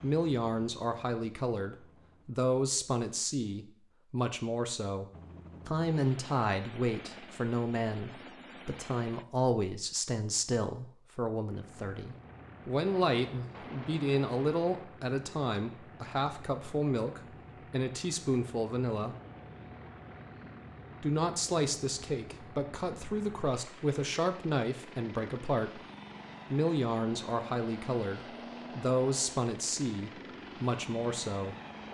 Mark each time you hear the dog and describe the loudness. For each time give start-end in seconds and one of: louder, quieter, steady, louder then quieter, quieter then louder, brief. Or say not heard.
not heard.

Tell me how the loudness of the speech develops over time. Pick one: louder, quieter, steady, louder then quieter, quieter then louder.
steady.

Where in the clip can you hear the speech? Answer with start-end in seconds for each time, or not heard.
0.0-5.0, 5.7-19.1, 21.0-25.8, 26.5-31.6.